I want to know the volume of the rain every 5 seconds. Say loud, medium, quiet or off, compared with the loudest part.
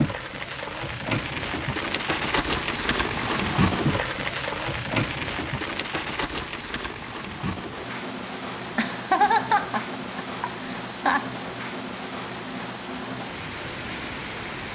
loud, medium, medium.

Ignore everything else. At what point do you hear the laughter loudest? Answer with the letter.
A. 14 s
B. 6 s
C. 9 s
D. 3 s
C.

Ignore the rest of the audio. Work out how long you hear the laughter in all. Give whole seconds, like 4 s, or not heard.
3 s.